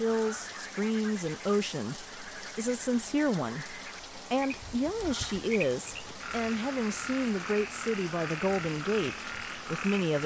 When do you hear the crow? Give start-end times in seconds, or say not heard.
not heard.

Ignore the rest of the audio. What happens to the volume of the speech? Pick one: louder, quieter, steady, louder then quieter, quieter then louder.
steady.